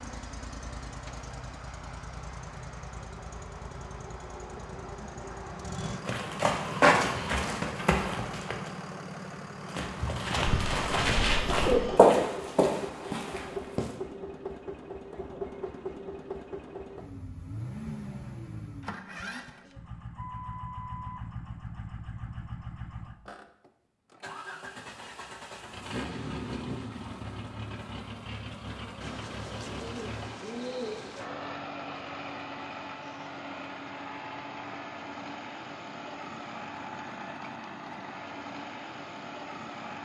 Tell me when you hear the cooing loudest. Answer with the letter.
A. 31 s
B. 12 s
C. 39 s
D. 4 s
B.